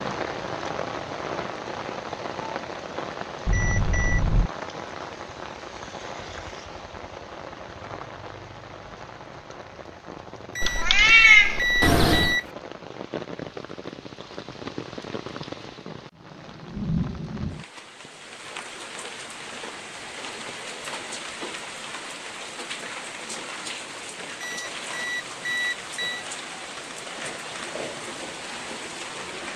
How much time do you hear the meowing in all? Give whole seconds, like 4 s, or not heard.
2 s.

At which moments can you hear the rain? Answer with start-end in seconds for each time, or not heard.
0.0-29.5.